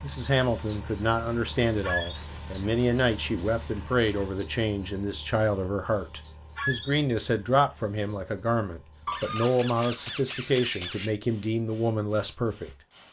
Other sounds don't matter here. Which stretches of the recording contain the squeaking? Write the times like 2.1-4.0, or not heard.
1.8-2.2, 6.5-7.0, 9.1-11.1.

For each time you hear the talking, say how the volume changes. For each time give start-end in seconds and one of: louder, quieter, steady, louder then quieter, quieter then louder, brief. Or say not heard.
0.0-12.8 steady.